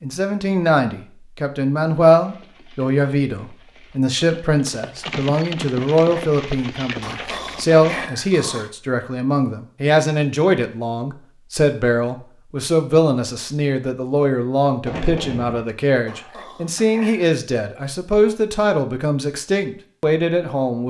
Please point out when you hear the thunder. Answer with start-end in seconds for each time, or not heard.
14.8-15.7.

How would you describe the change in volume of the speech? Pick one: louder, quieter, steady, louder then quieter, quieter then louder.
steady.